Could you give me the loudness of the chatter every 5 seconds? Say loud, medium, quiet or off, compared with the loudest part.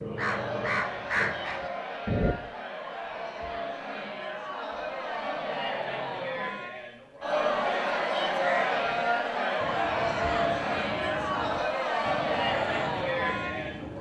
medium, loud, loud.